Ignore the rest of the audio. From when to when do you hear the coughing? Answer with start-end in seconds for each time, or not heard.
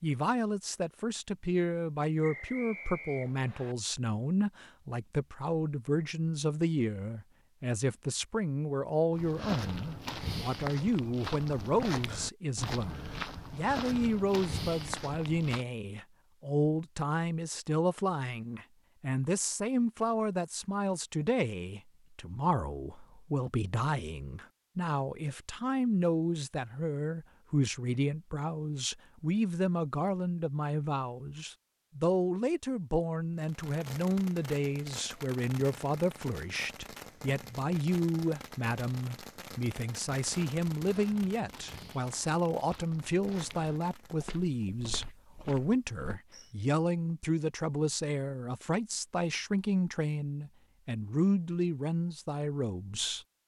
not heard.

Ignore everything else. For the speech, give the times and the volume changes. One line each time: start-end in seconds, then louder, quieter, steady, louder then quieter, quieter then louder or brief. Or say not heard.
0.0-53.2 steady.